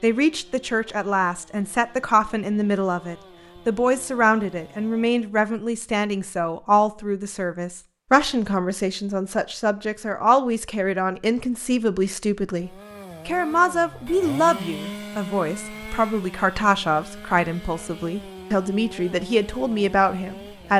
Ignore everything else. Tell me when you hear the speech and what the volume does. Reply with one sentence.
You can hear the speech from 0.0 to 20.7 s, at a steady volume.